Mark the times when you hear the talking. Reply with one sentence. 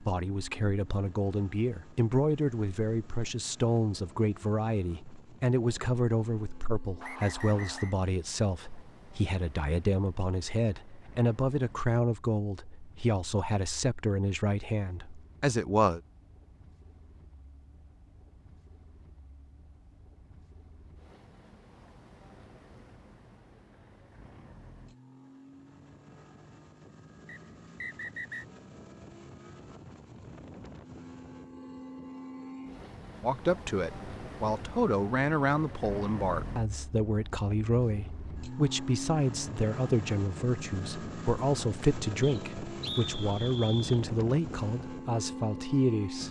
The talking can be heard from 0.0 to 16.0 s and from 33.2 to 46.2 s.